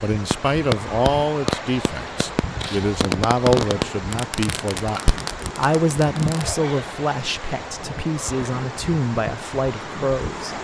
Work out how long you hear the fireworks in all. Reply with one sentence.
The fireworks can be heard for 6 seconds in total.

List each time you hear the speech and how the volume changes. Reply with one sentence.
You can hear the speech from 0.0 to 10.6 s, at a steady volume.